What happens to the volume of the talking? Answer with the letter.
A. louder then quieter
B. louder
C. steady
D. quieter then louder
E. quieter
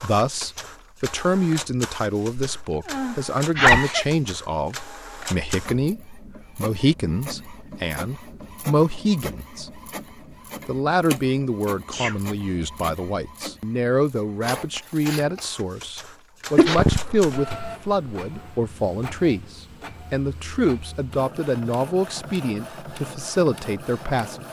C.